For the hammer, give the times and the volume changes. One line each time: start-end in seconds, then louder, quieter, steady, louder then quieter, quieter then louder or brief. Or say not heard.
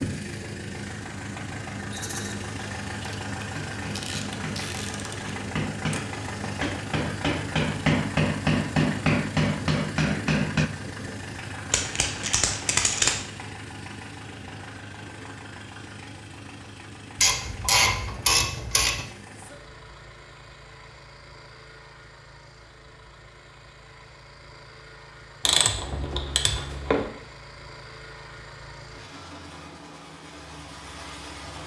3.5-10.7 louder.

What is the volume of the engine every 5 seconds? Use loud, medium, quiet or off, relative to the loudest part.
loud, loud, loud, medium, quiet, medium, medium.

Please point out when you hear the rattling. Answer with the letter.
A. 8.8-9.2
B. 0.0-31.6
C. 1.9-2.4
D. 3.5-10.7
C.